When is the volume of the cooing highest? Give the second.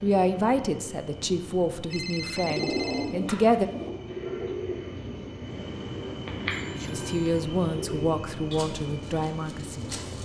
3 s.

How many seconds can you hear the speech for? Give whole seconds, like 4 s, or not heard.
7 s.